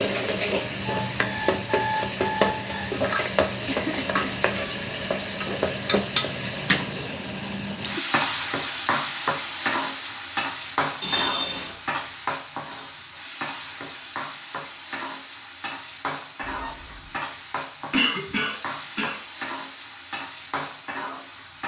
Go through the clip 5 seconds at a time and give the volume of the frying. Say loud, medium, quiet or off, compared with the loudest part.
loud, loud, medium, medium, medium.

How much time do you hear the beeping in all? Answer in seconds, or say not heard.
3 s.